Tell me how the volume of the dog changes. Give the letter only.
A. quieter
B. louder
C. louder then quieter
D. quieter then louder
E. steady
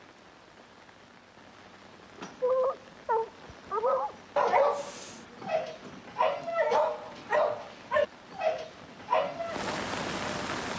E.